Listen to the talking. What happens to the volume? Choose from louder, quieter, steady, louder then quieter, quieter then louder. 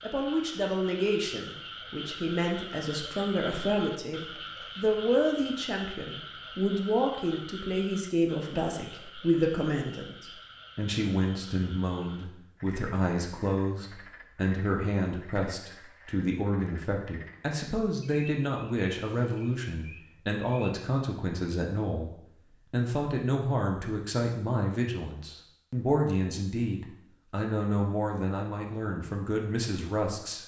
steady.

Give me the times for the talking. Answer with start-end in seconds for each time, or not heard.
0.0-30.4.